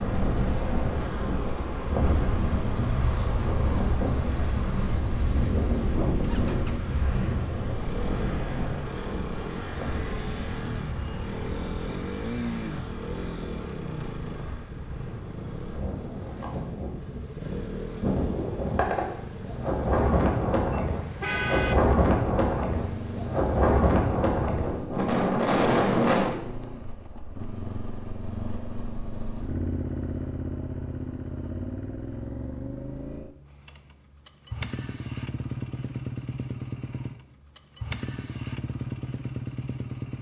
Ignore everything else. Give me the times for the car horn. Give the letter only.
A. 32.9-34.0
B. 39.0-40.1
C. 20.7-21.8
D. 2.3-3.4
C.